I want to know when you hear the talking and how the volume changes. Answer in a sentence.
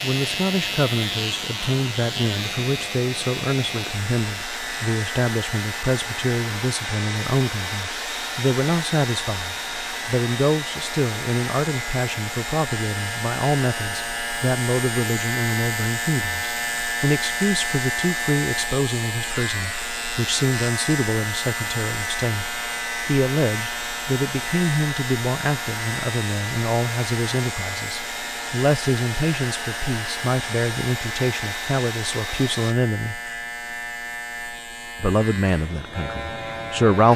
You can hear the talking from 0.0 to 33.2 s, at a steady volume; and briefly from 35.0 to 37.1 s.